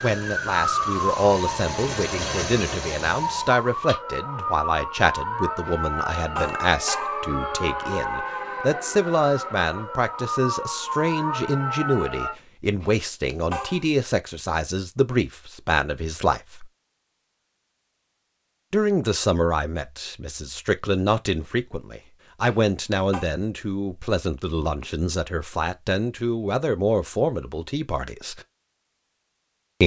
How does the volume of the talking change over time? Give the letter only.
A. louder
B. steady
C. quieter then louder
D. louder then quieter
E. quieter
B.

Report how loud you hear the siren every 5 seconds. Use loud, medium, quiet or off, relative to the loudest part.
loud, loud, loud, off, off, off.